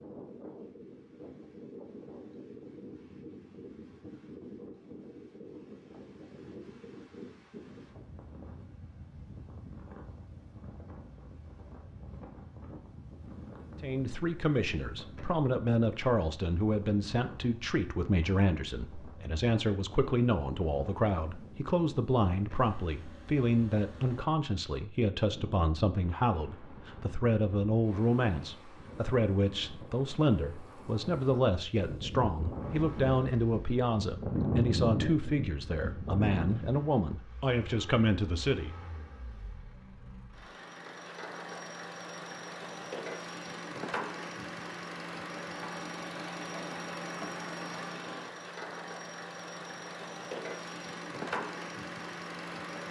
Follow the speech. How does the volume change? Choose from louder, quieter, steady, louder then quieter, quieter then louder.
steady.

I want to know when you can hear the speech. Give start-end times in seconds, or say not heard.
13.8-38.7.